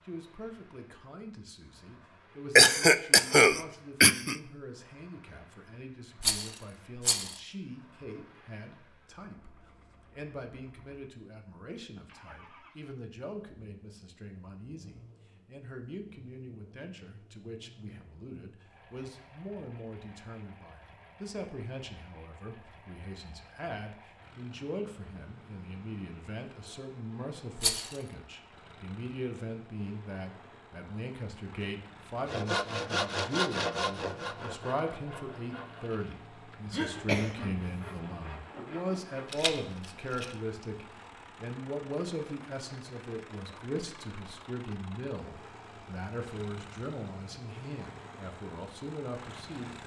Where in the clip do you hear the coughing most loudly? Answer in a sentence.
The volume of the coughing peaks at 3 seconds.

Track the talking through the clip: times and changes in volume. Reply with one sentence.
You can hear the talking from 0.0 to 49.8 s, getting louder.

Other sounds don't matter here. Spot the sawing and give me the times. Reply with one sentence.
You can hear the sawing from 32.2 to 39.5 s.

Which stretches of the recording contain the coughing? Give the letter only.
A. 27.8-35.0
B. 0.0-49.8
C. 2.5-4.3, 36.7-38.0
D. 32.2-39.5
C.